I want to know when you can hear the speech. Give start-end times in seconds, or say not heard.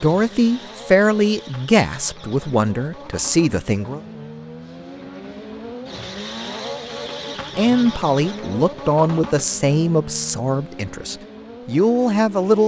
0.0-4.0, 7.3-12.6.